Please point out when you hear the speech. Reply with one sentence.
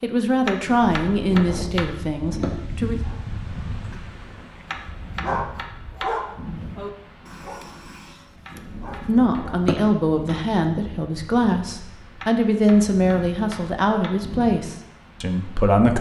You can hear the speech from 0.0 to 3.0 s and from 9.0 to 15.9 s.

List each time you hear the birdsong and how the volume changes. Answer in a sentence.
You can't hear the birdsong here.